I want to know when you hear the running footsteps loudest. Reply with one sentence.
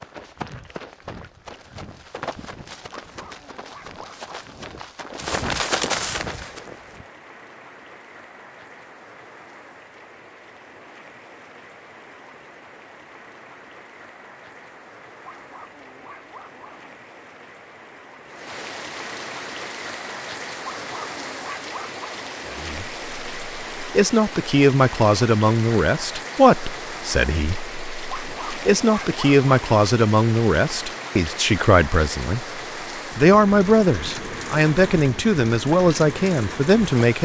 The volume of the running footsteps peaks at 6 seconds.